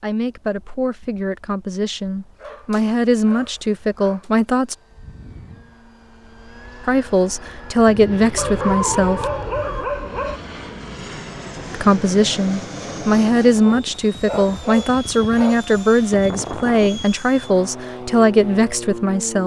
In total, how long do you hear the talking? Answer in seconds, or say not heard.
15 s.